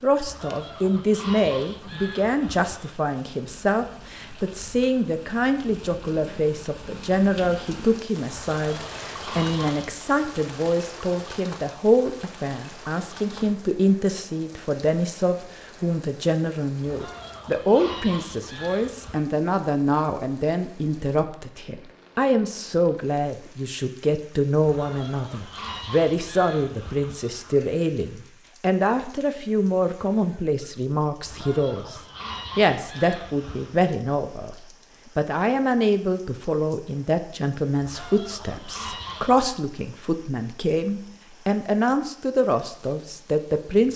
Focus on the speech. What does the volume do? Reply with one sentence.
The volume of the speech stays about the same.